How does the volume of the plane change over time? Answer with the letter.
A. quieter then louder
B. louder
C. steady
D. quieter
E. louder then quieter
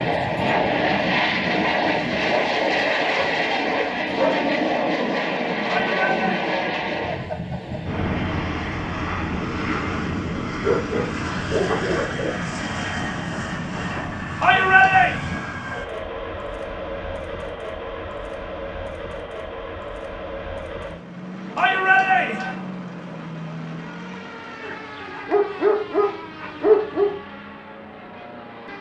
D.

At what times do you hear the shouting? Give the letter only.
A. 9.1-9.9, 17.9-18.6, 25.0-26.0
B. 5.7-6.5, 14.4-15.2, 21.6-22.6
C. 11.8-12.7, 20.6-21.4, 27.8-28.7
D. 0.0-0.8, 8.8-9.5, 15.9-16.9
B.